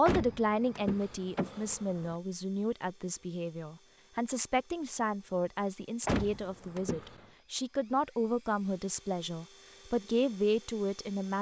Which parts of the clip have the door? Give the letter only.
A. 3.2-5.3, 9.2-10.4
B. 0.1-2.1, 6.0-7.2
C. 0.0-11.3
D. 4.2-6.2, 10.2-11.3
B.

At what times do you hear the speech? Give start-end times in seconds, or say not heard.
0.0-11.3.